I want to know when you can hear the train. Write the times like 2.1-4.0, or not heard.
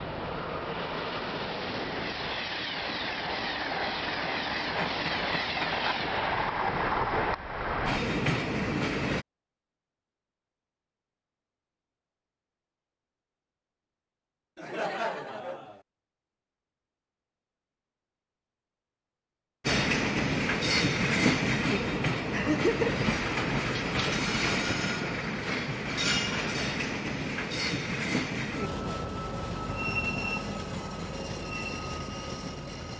0.0-9.2, 19.6-32.9.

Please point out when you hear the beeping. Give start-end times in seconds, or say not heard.
not heard.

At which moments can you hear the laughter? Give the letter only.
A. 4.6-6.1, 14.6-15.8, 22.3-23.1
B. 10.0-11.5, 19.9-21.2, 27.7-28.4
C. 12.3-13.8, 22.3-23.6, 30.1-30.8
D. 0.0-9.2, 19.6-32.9
A.